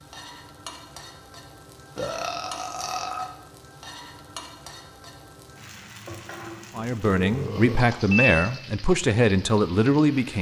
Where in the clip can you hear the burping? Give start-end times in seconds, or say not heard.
1.9-3.4, 7.2-7.9.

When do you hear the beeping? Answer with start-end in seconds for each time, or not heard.
7.9-8.5.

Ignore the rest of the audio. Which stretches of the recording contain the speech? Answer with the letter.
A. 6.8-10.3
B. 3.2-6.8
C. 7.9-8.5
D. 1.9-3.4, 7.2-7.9
A.